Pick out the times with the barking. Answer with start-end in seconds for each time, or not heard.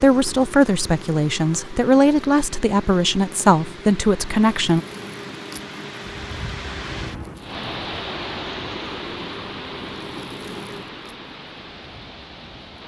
not heard.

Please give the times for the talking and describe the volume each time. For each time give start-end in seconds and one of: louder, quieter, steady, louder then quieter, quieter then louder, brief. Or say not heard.
0.0-4.8 steady.